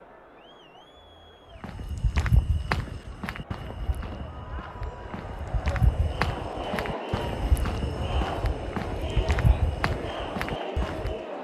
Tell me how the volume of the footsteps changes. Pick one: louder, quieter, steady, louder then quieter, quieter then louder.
quieter then louder.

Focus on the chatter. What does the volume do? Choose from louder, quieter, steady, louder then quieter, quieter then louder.
louder.